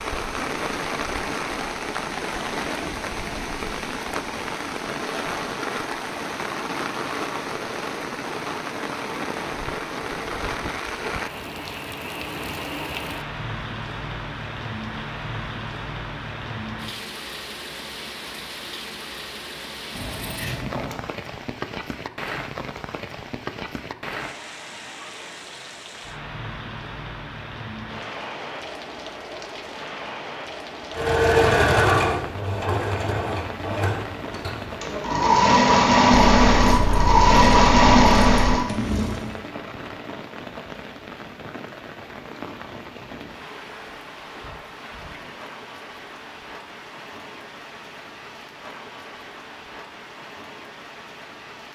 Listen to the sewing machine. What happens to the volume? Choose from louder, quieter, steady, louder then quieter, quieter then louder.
quieter then louder.